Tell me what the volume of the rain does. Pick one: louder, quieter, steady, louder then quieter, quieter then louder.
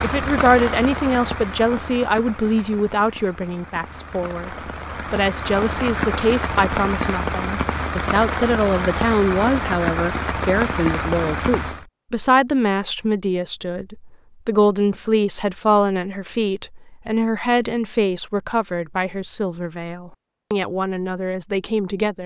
quieter then louder.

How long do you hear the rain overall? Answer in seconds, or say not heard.
12 s.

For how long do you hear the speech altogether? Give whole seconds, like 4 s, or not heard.
22 s.